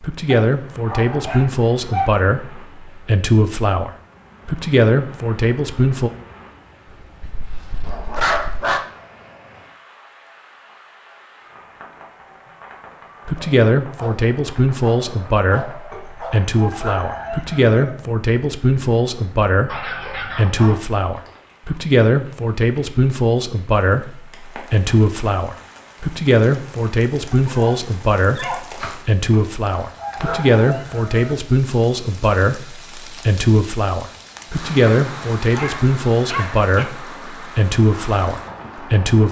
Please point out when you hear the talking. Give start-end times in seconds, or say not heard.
0.0-6.1, 13.2-39.2.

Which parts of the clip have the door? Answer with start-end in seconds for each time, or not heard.
not heard.